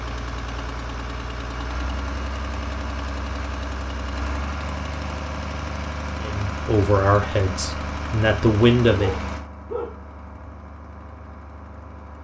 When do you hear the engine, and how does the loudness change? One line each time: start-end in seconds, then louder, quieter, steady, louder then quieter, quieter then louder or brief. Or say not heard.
0.0-12.1 quieter.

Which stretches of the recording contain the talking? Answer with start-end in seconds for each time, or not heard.
6.2-9.2.